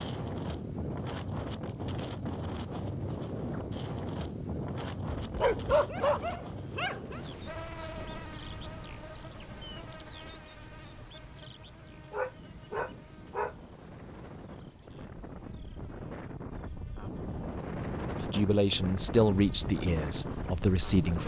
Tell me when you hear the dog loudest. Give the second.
6 s.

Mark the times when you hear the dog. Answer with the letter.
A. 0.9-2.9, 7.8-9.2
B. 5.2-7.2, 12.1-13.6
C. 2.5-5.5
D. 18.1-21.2
B.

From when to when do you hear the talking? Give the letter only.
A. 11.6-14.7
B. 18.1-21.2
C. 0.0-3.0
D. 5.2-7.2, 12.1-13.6
B.